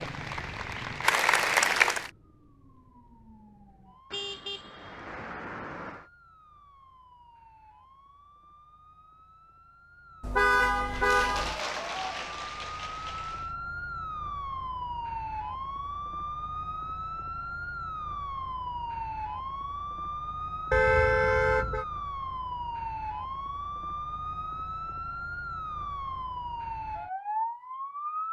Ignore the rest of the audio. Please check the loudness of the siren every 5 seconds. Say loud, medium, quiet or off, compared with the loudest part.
quiet, quiet, loud, loud, loud, loud.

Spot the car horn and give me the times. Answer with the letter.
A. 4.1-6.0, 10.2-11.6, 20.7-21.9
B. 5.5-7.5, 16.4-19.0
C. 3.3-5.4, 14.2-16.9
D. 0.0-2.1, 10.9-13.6
A.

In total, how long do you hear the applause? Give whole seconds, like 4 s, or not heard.
5 s.